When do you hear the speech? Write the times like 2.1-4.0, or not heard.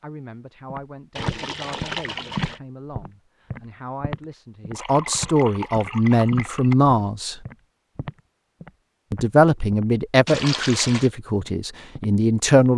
0.0-7.3, 9.1-12.7.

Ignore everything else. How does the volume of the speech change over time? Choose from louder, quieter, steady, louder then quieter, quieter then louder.
louder.